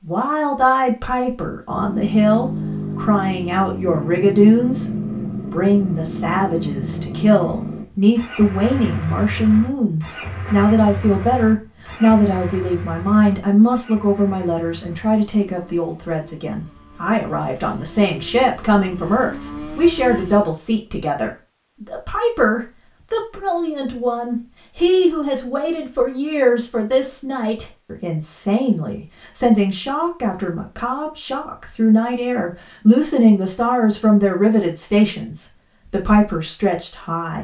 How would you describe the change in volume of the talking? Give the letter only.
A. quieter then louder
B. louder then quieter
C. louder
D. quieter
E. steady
E.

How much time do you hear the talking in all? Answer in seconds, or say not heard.
37 s.